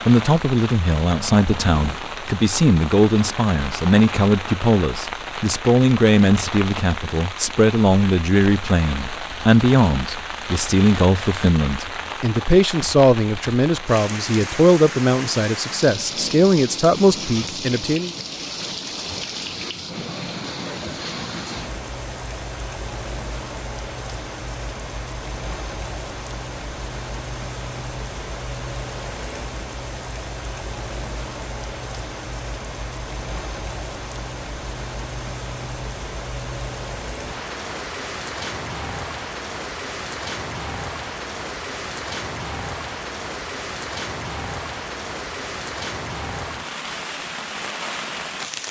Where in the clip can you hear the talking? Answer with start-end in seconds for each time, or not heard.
0.0-18.1.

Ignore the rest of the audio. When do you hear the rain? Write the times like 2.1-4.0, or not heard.
0.0-48.6.